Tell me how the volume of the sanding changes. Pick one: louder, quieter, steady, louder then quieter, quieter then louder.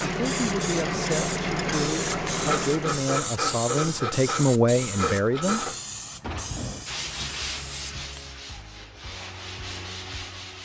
quieter.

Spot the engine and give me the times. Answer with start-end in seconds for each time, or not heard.
0.0-3.0.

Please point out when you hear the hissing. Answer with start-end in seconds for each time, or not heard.
0.1-8.3.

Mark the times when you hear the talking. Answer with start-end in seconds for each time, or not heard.
0.0-5.6.